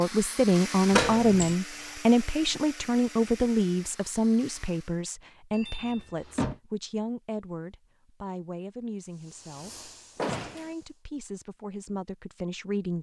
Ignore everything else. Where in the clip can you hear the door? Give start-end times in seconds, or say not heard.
0.9-1.6, 5.5-6.6, 10.2-10.7.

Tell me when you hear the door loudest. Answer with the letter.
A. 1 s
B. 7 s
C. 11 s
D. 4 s
A.